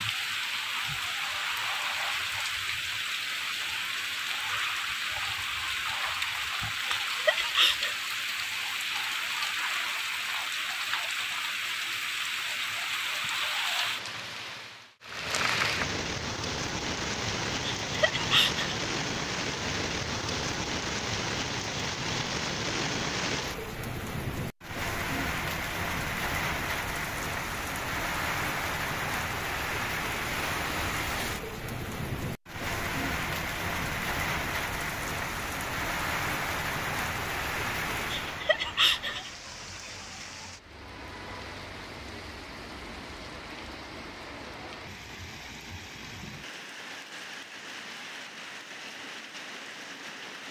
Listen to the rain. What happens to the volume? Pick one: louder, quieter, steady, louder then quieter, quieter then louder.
quieter.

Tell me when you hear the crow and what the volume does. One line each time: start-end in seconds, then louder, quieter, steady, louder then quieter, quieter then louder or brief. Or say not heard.
not heard.